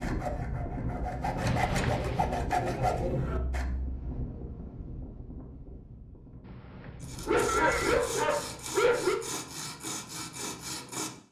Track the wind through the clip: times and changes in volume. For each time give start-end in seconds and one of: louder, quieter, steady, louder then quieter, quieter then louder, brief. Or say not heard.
0.0-8.1 quieter.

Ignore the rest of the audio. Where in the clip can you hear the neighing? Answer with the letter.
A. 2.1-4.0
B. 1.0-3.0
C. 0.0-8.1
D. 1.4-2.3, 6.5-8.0
D.